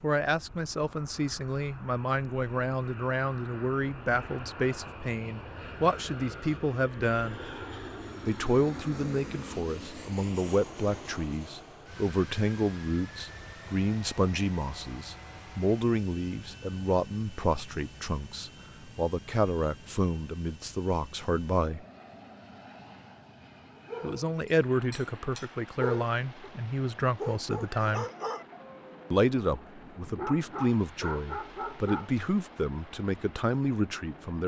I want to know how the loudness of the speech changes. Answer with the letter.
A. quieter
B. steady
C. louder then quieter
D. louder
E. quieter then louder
B.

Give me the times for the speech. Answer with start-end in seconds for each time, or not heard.
0.0-7.4, 8.2-21.9, 24.0-28.1, 29.1-34.4.